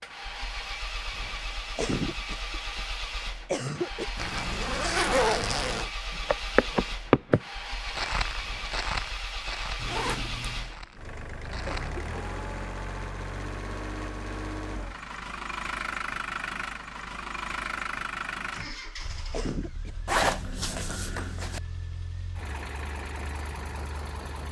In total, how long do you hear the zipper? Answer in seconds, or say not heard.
4 s.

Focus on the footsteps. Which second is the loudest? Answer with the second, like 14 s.
7 s.